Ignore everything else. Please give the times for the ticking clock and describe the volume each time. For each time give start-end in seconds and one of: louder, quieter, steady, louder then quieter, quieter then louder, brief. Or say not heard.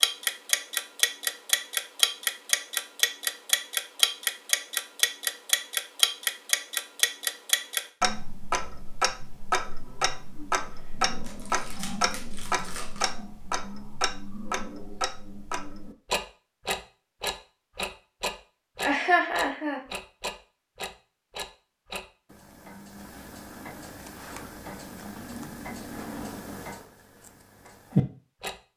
0.0-28.6 quieter.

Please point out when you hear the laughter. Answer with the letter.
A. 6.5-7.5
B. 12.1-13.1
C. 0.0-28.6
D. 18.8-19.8
D.